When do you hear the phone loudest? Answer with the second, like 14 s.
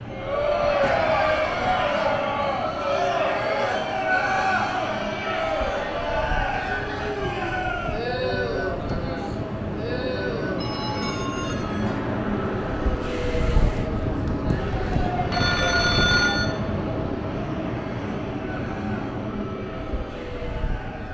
16 s.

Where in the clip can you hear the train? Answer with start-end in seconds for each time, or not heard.
0.0-21.0.